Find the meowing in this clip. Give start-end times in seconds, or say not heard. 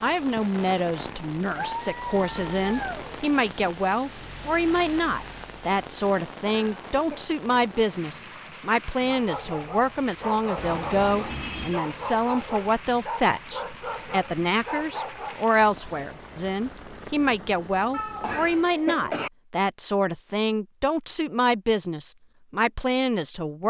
1.5-3.2, 10.6-11.8, 17.9-19.0.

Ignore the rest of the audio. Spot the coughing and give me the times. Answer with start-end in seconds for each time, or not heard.
6.5-7.2, 18.2-19.3.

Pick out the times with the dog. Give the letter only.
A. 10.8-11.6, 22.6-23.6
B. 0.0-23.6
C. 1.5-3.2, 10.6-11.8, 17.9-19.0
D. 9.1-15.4
D.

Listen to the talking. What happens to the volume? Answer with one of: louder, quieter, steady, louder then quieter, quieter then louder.
steady.